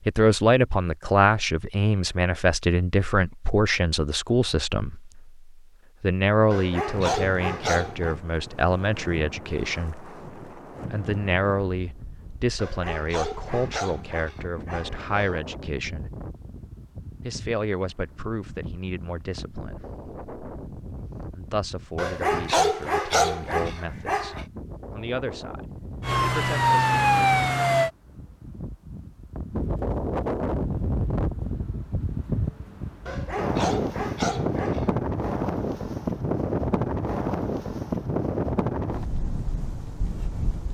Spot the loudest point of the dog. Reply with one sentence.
The volume of the dog peaks at 23 seconds.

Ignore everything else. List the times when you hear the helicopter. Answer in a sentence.
You can't hear the helicopter here.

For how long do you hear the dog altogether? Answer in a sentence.
The dog can be heard for 9 seconds in total.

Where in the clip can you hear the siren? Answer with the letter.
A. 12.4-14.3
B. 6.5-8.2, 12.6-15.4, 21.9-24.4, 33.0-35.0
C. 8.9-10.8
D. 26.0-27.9
D.